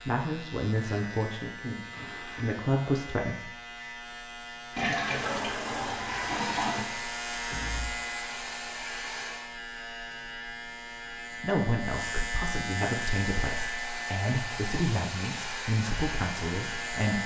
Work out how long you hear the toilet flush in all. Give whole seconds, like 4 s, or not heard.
2 s.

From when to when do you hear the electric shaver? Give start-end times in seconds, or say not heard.
0.0-17.2.